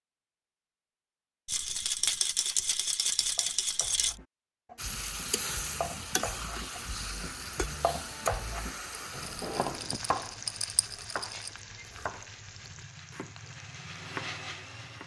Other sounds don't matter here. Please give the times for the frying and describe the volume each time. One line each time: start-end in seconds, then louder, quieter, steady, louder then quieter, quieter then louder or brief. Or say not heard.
4.8-15.0 quieter.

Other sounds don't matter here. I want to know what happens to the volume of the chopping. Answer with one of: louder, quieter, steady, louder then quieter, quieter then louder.
louder then quieter.